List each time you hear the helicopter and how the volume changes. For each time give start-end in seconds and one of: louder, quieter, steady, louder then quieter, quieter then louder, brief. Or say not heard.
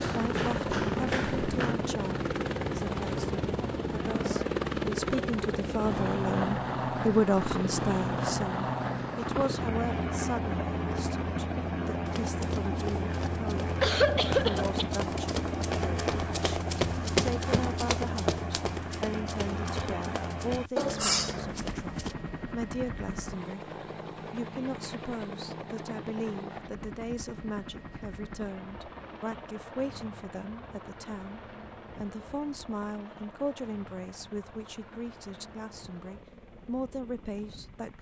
0.0-37.9 quieter.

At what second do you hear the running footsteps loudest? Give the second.
17 s.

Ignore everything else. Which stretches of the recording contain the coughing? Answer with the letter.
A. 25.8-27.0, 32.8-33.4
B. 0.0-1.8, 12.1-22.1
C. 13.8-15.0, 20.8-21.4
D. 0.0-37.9
C.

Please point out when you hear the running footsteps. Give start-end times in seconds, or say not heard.
0.0-1.8, 12.1-22.1.